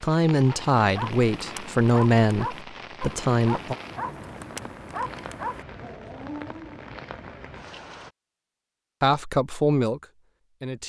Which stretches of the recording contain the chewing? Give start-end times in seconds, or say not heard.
not heard.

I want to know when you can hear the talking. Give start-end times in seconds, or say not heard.
0.0-3.8, 9.0-10.8.